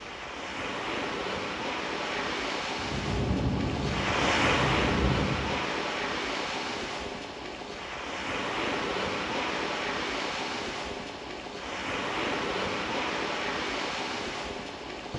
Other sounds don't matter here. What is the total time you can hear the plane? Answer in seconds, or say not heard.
3 s.